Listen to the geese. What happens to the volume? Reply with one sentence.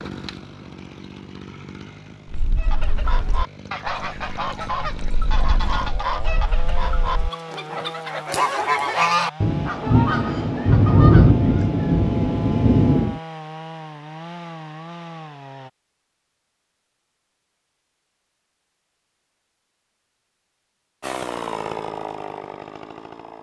The loudness of the geese goes up, then down.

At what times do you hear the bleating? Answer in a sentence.
The bleating can be heard from 2.2 to 7.3 s.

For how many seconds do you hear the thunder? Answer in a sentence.
The thunder can be heard for 4 seconds in total.